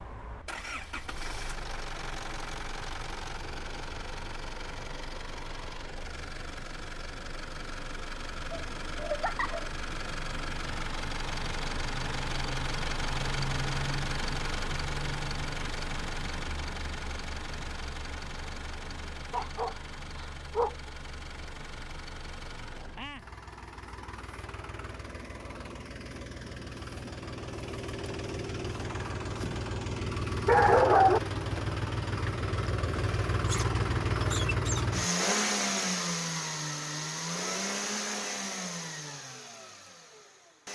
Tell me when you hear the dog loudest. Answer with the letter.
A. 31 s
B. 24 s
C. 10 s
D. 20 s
A.